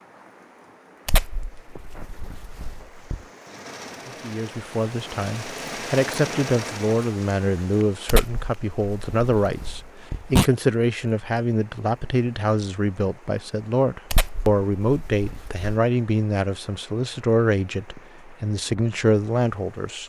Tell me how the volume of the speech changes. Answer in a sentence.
The loudness of the speech stays about the same.